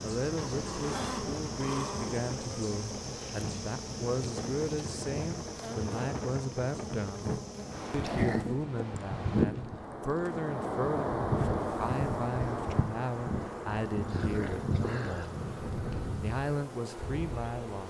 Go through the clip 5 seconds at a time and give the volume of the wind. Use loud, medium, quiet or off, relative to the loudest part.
medium, loud, loud, medium.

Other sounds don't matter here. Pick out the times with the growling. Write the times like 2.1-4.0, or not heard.
0.3-2.2, 7.5-8.6, 14.1-15.3.